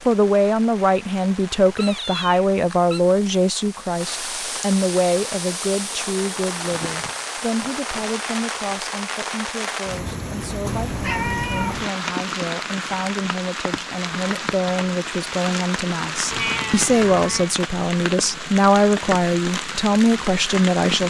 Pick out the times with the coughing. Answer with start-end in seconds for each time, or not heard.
not heard.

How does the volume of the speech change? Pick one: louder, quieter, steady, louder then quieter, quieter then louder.
quieter then louder.